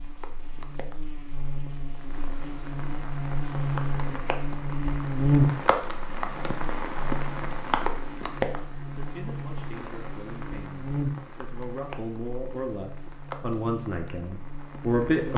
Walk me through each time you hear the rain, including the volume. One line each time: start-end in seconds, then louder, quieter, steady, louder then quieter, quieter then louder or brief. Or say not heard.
0.0-15.3 louder then quieter.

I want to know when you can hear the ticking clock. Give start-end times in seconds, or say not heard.
not heard.